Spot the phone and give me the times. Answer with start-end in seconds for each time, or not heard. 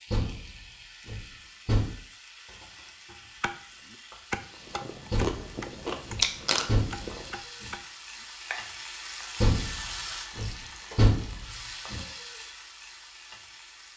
not heard.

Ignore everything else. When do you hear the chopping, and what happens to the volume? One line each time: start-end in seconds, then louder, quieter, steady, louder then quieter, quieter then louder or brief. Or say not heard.
3.1-9.4 quieter.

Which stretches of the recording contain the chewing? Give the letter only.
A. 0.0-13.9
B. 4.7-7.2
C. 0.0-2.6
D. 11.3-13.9
B.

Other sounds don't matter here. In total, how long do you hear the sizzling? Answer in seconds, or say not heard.
14 s.